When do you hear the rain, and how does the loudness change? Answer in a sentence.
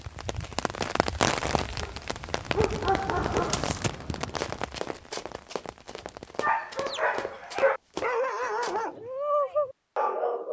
The rain can be heard from 0.0 to 6.5 s, getting quieter.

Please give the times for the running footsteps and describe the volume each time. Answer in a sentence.
The running footsteps can be heard from 3.4 to 8.8 s, getting quieter then louder.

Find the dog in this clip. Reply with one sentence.
The dog can be heard from 1.6 to 4.5 s and from 6.4 to 10.4 s.